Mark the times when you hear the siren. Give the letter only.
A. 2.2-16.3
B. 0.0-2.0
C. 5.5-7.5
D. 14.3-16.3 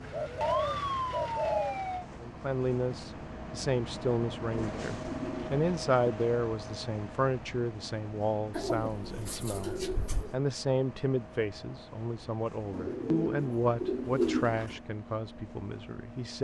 B.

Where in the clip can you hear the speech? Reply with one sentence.
The speech can be heard from 2.2 to 16.3 s.